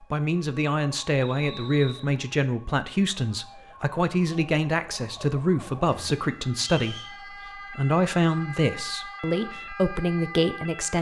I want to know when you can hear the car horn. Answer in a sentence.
The car horn can't be heard in this clip.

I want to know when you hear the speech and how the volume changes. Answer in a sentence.
The speech can be heard from 0.0 to 10.9 s, at a steady volume.